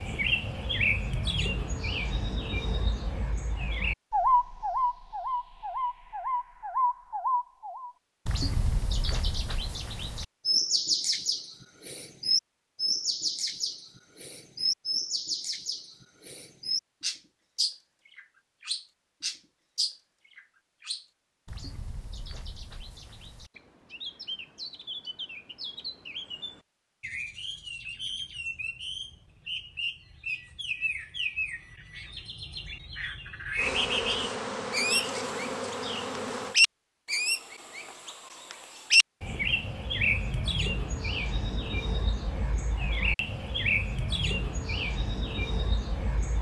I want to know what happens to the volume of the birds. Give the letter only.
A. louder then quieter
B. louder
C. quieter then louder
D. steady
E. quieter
C.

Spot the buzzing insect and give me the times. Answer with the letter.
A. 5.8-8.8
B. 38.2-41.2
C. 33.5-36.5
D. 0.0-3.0
C.